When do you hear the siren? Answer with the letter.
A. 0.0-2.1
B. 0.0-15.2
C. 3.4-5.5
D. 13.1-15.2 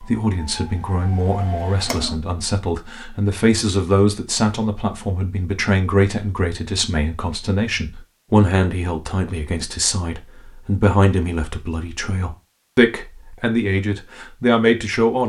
A.